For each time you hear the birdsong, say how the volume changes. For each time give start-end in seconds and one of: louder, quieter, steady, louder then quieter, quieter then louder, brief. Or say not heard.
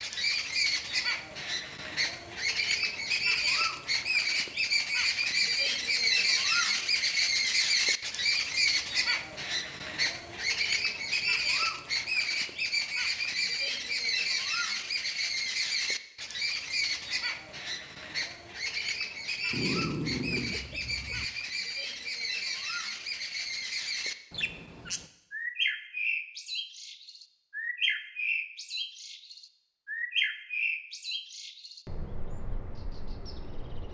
0.0-33.9 quieter.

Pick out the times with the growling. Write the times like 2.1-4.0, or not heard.
19.5-21.2.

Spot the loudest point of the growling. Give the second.
20 s.